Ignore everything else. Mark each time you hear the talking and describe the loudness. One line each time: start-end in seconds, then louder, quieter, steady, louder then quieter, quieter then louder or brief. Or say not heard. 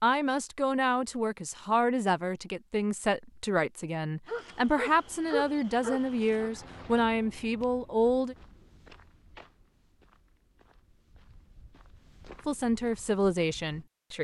0.0-8.3 steady
12.4-14.1 brief.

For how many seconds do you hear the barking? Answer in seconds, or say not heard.
2 s.